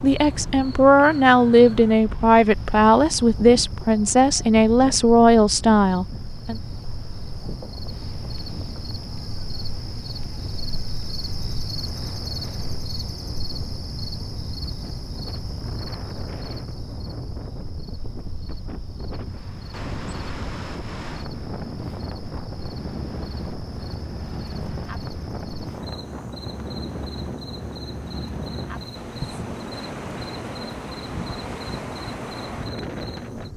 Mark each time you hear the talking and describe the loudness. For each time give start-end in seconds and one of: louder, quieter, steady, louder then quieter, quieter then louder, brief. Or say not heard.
0.0-6.5 steady.